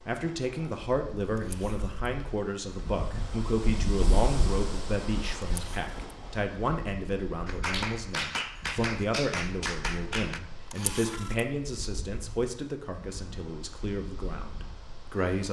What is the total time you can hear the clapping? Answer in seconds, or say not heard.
3 s.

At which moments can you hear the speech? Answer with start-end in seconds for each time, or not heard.
0.1-15.4.